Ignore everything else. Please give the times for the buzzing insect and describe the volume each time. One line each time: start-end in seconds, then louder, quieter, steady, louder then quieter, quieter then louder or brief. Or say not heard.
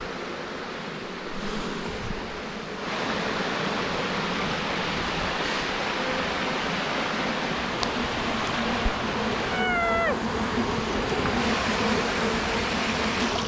0.0-13.4 louder.